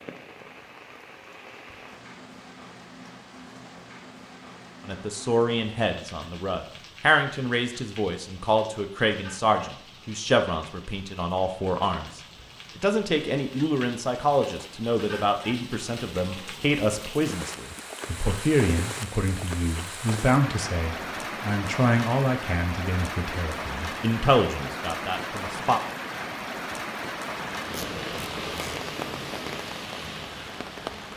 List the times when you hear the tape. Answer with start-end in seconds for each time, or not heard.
27.7-28.8.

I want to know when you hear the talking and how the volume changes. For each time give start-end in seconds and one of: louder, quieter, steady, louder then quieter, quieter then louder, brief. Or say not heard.
4.8-25.8 steady.